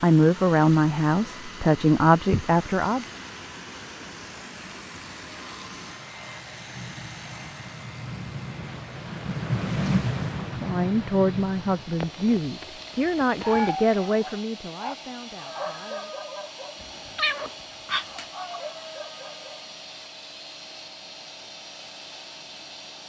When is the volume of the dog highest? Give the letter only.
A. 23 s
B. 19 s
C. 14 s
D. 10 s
C.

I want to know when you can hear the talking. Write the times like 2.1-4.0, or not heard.
0.0-3.0, 10.4-16.1.